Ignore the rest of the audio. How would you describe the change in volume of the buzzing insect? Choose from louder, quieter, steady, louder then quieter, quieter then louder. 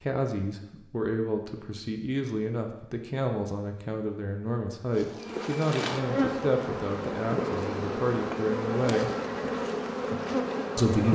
steady.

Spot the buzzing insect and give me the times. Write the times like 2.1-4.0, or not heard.
5.0-11.0.